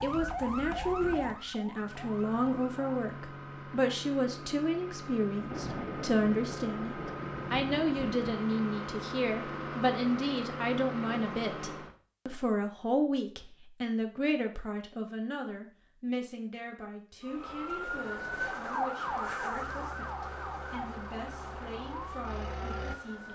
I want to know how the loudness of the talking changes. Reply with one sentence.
The loudness of the talking goes down.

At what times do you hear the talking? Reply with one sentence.
You can hear the talking from 0.0 to 23.3 s.